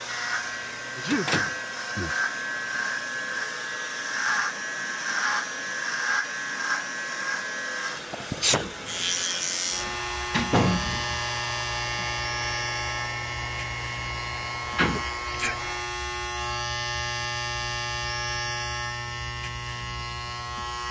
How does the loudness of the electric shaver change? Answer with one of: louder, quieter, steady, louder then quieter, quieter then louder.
steady.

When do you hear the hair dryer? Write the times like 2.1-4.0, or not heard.
0.0-16.0.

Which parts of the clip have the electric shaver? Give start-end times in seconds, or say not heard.
0.0-20.8.